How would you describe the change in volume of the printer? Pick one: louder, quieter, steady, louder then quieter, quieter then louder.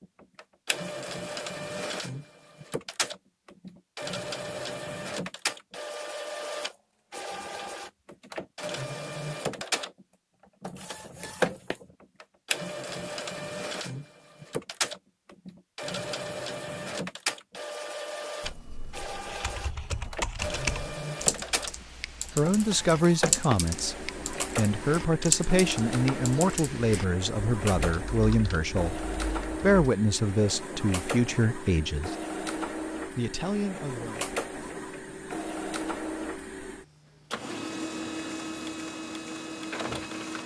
steady.